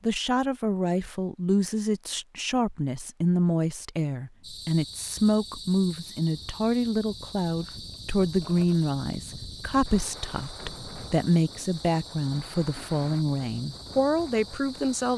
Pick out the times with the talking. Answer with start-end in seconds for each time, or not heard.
0.0-15.1.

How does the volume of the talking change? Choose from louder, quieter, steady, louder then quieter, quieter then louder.
steady.